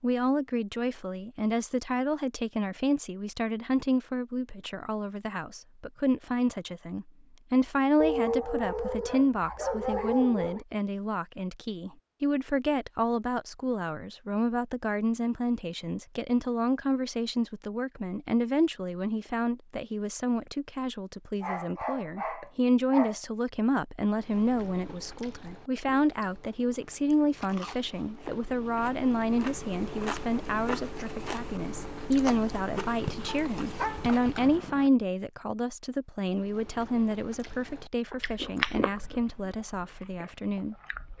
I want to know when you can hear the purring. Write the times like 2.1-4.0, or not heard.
not heard.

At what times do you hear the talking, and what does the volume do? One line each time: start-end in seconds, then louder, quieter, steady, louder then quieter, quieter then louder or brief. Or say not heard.
0.0-41.1 steady.